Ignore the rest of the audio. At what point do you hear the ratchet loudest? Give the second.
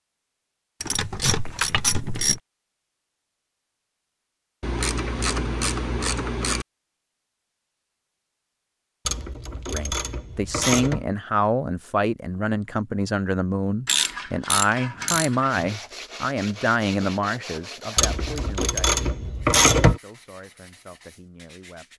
20 s.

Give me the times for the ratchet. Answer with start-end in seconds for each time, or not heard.
0.8-2.4, 4.6-6.7, 9.1-11.1, 13.8-15.7, 17.9-20.0.